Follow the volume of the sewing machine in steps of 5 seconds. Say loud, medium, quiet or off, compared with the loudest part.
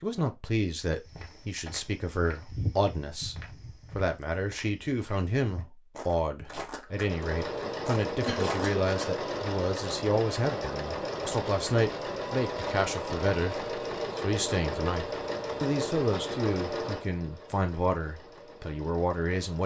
off, loud, loud, loud.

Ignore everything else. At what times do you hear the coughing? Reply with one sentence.
The coughing can be heard from 8.2 to 9.2 s.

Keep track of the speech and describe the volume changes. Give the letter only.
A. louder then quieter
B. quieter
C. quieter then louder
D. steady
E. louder
D.